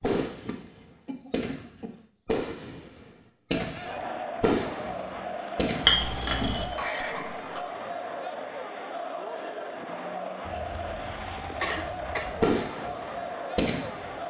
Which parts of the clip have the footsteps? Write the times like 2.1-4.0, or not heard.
not heard.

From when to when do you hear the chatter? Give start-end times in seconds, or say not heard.
3.5-14.2.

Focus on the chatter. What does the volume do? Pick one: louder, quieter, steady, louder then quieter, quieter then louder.
steady.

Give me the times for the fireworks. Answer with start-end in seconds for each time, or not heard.
0.0-5.9, 11.8-14.1.